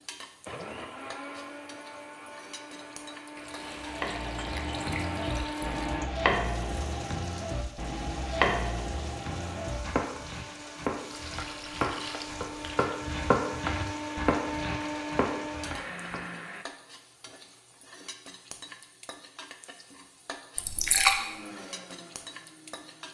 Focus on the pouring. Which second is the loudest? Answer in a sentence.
The volume of the pouring peaks at 21 seconds.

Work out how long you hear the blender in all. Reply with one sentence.
You can hear the blender for 15 seconds altogether.